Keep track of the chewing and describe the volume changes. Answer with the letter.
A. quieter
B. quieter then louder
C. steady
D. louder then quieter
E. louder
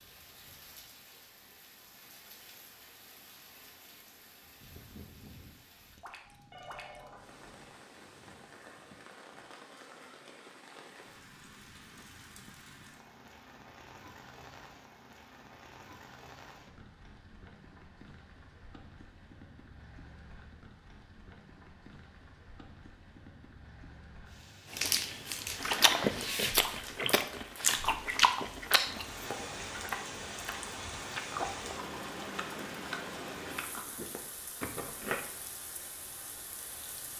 A.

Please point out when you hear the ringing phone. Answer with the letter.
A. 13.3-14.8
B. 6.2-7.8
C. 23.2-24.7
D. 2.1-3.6
B.